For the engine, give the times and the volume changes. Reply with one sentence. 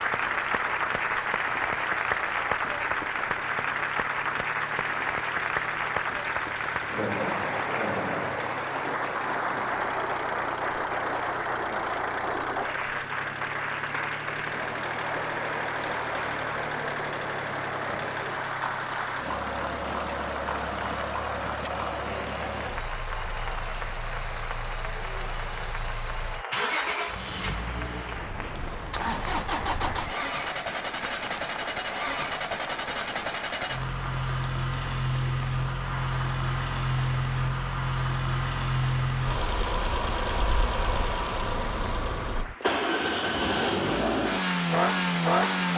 The engine can be heard from 0.0 to 45.7 s, getting louder.